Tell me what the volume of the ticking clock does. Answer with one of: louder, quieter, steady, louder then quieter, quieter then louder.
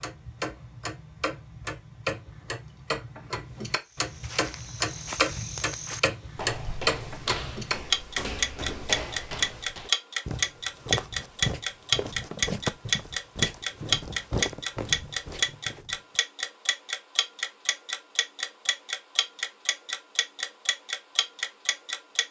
louder then quieter.